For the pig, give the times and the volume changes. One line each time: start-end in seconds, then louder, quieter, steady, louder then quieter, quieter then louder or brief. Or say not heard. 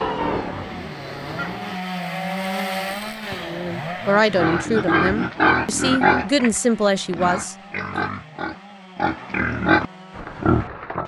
0.0-1.8 brief
4.0-11.0 quieter then louder.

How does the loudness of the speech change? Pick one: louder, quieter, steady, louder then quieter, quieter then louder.
quieter then louder.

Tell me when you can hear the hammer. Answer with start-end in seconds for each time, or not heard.
not heard.